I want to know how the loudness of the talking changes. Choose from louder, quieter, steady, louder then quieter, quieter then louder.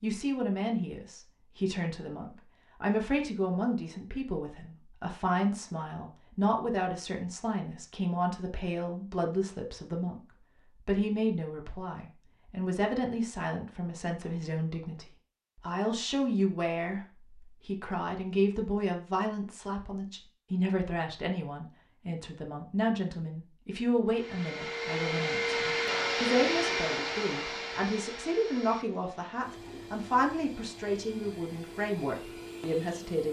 steady.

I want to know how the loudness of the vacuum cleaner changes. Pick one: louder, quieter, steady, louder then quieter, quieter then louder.
quieter.